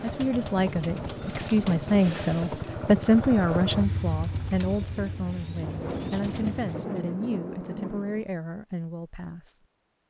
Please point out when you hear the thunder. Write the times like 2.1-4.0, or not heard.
5.6-8.3.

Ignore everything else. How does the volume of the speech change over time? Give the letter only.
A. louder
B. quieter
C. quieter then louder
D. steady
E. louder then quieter
B.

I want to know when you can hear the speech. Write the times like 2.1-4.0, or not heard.
0.0-9.6.